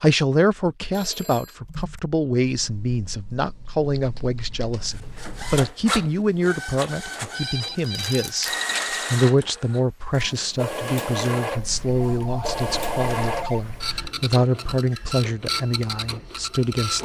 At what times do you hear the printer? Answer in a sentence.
The printer can be heard from 4.8 to 16.9 s.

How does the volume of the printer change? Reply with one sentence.
The volume of the printer stays about the same.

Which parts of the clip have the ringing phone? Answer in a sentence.
You can hear the ringing phone from 0.9 to 1.6 s, from 7.3 to 8.8 s and from 11.9 to 13.6 s.